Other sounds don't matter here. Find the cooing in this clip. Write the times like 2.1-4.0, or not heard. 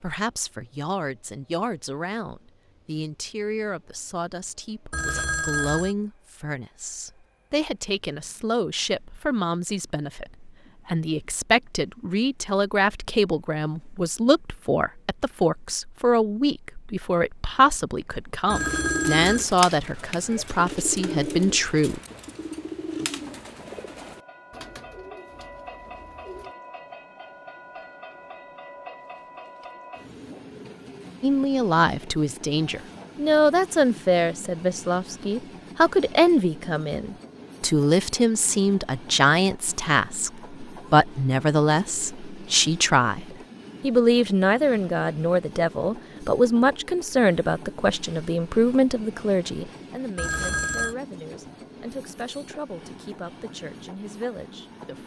18.4-26.6.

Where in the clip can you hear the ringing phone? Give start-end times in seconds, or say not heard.
4.9-6.0, 18.5-19.4, 50.1-51.0.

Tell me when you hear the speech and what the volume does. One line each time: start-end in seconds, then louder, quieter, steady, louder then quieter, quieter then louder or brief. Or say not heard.
0.0-22.0 louder
31.2-55.0 quieter.